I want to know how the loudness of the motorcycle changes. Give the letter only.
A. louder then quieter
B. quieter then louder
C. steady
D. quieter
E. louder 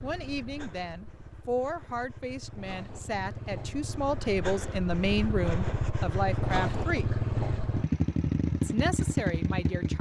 E.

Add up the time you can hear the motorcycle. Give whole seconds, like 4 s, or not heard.
10 s.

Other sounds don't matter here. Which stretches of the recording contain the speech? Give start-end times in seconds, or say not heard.
0.0-7.0, 8.6-9.9.